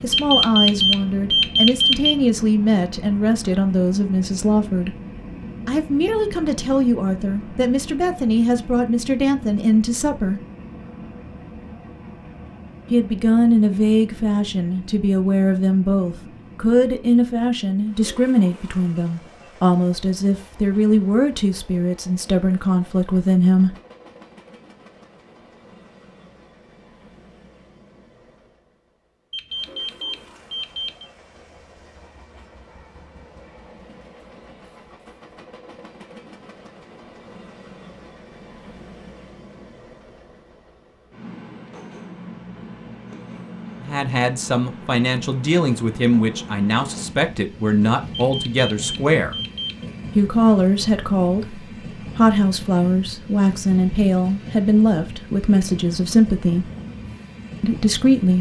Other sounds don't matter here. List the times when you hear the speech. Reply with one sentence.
The speech can be heard from 0.0 to 5.0 s, from 5.7 to 10.4 s, from 12.9 to 23.8 s, from 43.8 to 49.4 s, from 50.1 to 56.7 s and from 57.6 to 58.3 s.